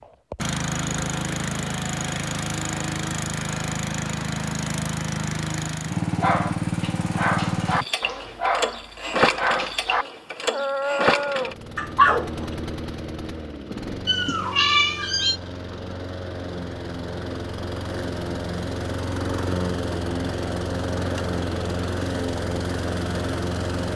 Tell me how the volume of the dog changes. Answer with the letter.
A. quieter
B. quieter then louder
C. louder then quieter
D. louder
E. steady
D.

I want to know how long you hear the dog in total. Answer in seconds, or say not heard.
6 s.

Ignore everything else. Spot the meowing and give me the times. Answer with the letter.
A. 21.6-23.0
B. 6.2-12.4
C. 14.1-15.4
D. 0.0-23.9
C.